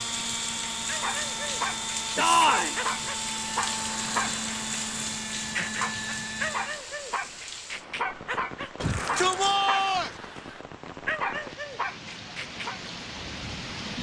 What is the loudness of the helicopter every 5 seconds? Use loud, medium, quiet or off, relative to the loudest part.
loud, loud, off.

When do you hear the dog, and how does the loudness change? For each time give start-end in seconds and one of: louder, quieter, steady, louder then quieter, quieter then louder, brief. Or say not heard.
0.8-12.8 steady.